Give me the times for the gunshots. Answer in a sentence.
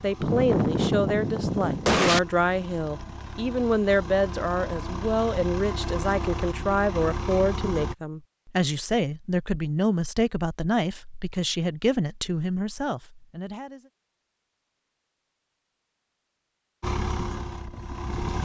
The gunshots can be heard from 0.2 to 2.2 s.